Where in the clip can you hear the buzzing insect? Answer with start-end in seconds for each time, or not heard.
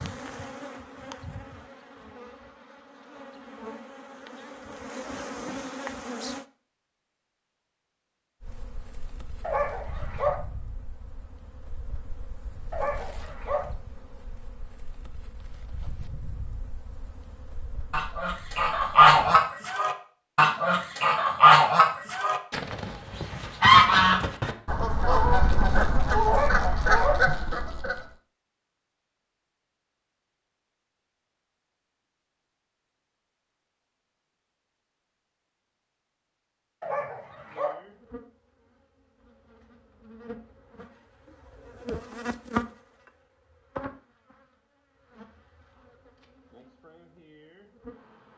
0.0-6.5, 8.4-19.5, 37.5-48.3.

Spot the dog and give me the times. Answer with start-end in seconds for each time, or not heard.
9.4-10.3, 12.7-13.7, 26.2-27.2, 36.8-37.8.